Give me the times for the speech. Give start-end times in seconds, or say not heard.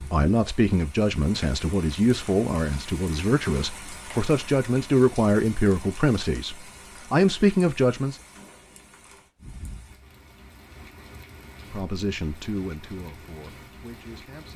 0.0-8.2, 11.7-14.5.